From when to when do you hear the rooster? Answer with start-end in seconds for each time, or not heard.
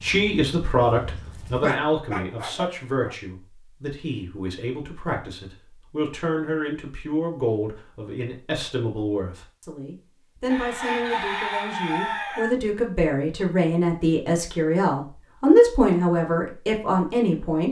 10.5-12.5.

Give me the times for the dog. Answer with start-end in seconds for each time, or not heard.
0.0-3.1.